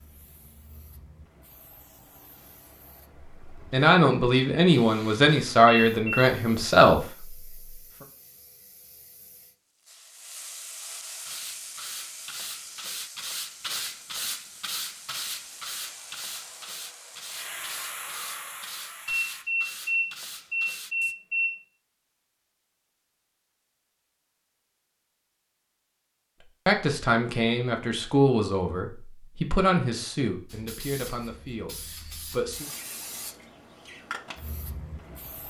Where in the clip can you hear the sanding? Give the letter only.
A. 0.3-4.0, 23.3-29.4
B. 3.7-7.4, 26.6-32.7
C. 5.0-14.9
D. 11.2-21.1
D.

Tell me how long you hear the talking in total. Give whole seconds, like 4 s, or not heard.
10 s.